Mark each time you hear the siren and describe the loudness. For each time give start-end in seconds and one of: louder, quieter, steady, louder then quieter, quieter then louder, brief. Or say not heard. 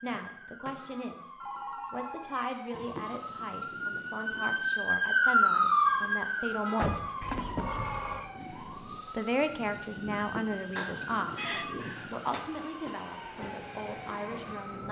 0.0-14.8 louder then quieter.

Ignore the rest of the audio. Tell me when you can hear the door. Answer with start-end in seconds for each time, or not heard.
0.1-1.1, 6.8-7.8, 11.8-12.6.